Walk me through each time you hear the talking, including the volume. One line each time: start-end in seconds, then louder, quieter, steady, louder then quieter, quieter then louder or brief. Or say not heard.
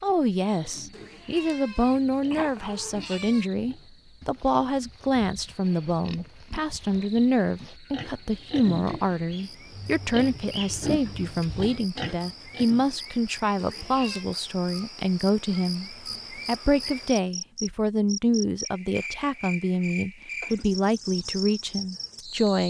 0.0-22.6 steady.